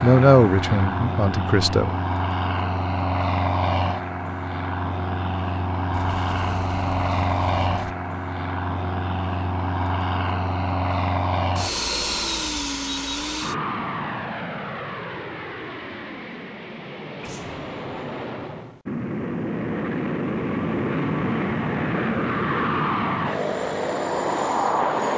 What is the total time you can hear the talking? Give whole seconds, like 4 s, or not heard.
2 s.